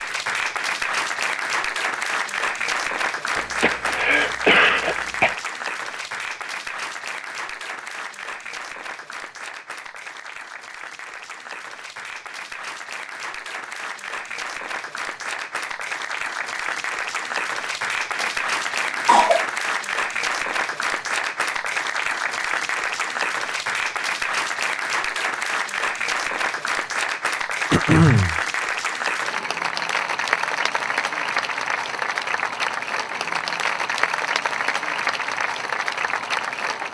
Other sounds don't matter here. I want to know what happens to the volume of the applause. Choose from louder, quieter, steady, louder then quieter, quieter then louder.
quieter then louder.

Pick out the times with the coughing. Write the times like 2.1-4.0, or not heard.
3.4-5.3, 18.2-19.4, 27.7-28.4.